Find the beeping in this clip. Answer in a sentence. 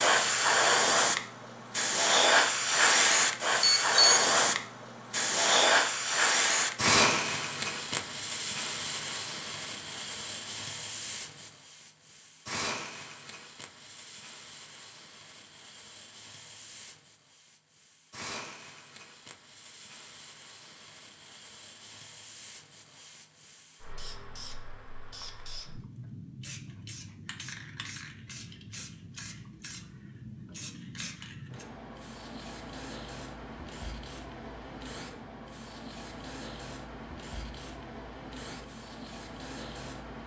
The beeping can be heard from 3.6 to 4.3 s.